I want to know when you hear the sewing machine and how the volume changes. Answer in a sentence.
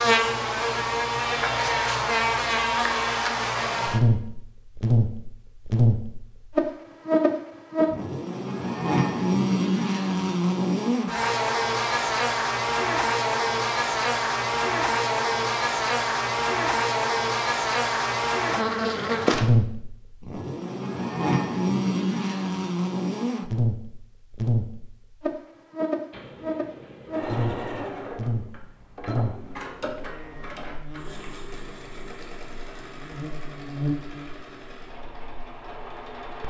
You can hear the sewing machine from 26.1 to 36.4 s, getting quieter.